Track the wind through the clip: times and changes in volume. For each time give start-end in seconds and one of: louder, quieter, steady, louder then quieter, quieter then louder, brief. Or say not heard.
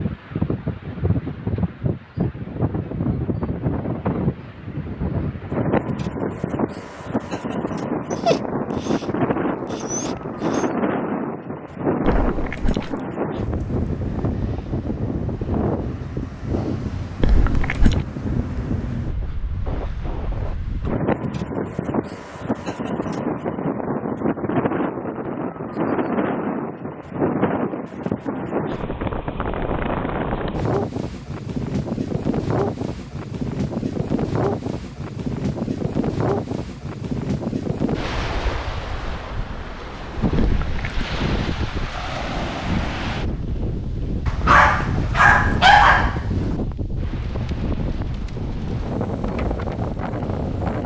0.0-50.8 steady.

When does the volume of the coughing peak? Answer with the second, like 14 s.
18 s.